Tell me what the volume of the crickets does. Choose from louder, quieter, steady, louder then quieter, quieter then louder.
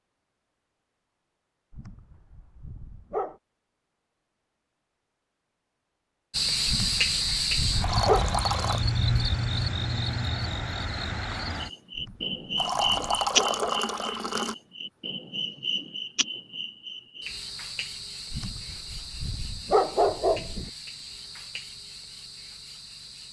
quieter.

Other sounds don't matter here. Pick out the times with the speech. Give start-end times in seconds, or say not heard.
not heard.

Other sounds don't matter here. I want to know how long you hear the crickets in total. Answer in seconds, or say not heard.
17 s.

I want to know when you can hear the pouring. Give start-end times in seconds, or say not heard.
7.8-8.8, 12.6-14.6.